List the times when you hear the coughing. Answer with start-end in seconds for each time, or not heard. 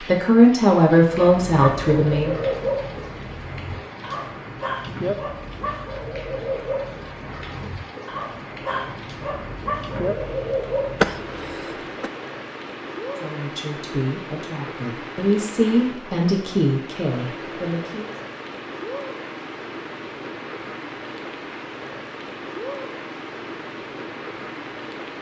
11.0-12.1.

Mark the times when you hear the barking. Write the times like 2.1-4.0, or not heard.
1.1-11.6.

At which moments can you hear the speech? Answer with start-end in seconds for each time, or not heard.
0.0-2.4, 13.2-18.1.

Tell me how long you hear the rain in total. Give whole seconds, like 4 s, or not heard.
25 s.